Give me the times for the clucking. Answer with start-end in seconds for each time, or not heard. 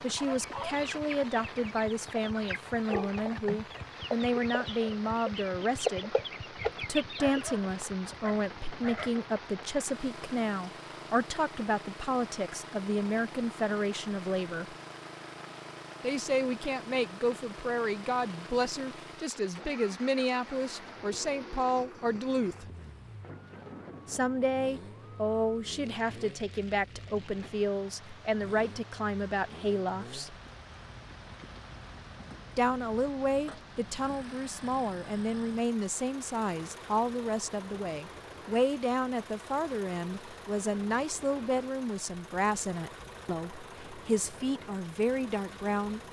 0.1-7.5.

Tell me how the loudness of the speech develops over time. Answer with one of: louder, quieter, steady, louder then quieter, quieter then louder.
steady.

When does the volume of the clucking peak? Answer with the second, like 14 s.
6 s.